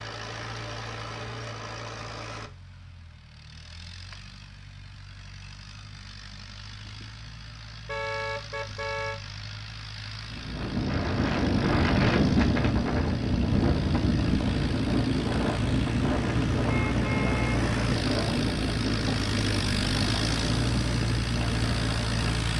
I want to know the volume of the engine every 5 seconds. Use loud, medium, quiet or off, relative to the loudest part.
medium, quiet, medium, loud, loud.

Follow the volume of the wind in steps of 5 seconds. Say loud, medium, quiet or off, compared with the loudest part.
off, off, loud, loud, medium.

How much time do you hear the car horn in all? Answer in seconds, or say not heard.
2 s.